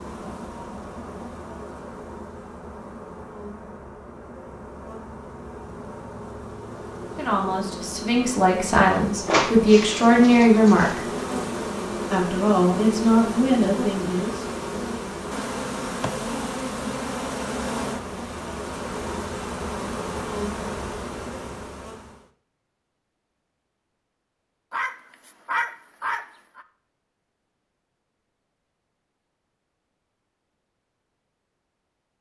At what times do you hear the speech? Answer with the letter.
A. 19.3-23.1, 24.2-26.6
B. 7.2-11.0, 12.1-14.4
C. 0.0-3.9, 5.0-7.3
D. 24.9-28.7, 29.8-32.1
B.